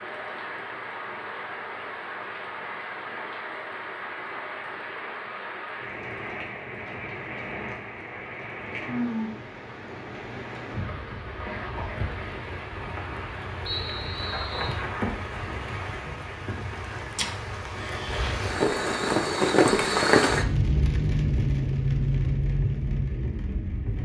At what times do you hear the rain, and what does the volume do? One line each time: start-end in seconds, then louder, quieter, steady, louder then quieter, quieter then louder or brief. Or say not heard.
0.0-24.0 louder.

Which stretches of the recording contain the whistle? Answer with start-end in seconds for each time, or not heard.
13.7-14.8.